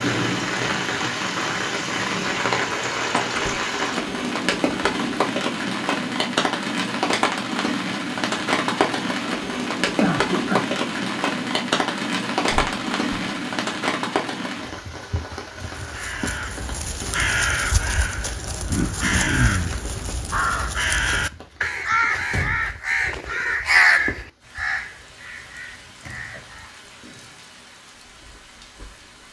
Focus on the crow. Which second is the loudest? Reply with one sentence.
The loudest moment of the crow is at 24 seconds.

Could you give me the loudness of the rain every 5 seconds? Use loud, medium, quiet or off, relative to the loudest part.
loud, loud, loud, quiet, quiet, quiet.